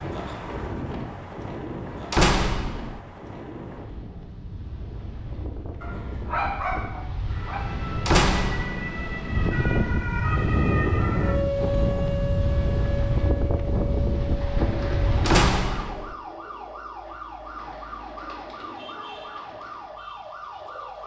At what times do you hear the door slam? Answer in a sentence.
You can hear the door slam from 2.1 to 3.0 s, from 8.1 to 8.9 s and from 15.2 to 16.1 s.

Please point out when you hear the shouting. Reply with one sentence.
The shouting can't be heard in this clip.